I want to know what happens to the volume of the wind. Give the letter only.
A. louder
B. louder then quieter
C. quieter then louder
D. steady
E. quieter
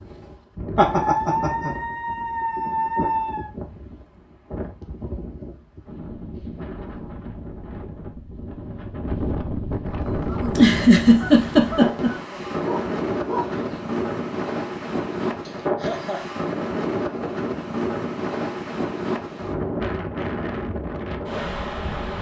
A.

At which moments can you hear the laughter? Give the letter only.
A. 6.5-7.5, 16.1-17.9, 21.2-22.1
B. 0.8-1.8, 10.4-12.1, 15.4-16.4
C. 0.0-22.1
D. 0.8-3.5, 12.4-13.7
B.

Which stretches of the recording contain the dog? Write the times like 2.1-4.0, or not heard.
0.8-3.5, 12.4-13.7.